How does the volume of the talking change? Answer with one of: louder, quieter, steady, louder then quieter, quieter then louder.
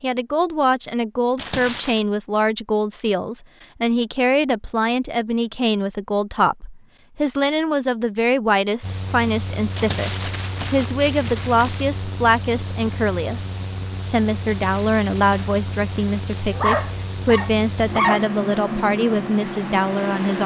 steady.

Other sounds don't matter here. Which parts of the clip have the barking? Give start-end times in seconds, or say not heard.
16.5-18.3.